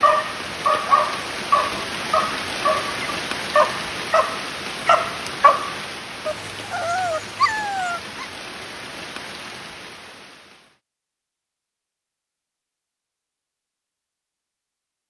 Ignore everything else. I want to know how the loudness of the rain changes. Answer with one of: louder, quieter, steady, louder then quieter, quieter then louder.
quieter.